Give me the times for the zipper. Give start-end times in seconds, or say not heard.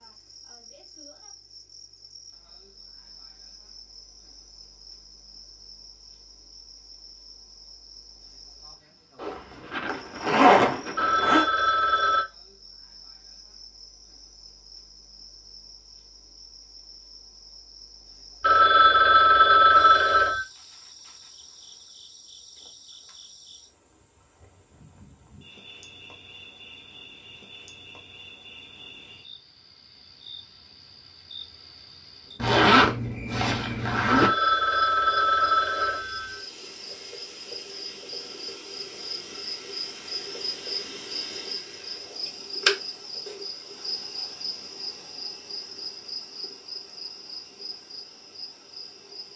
9.2-11.4, 32.4-34.3.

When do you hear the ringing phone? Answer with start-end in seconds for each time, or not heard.
10.9-12.2, 18.4-20.4, 34.1-36.4.